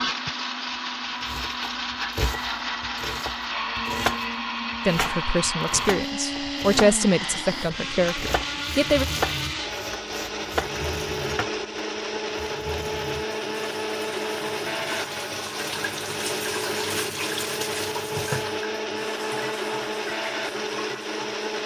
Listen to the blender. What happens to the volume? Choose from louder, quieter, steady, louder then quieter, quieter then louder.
steady.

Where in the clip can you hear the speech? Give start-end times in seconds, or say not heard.
4.8-9.1.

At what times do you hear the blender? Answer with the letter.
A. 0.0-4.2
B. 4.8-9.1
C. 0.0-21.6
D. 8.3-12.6
C.